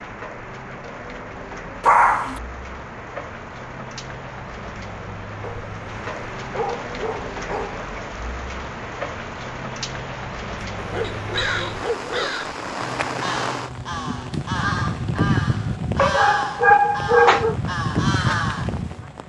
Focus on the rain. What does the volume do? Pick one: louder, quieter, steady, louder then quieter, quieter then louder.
louder.